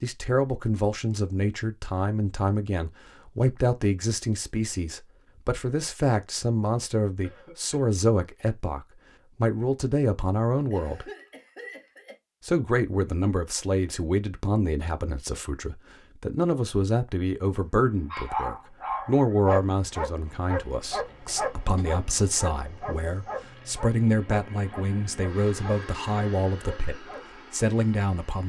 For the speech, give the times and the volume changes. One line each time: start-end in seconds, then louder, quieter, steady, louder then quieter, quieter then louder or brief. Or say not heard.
0.0-11.1 steady
12.4-28.4 steady.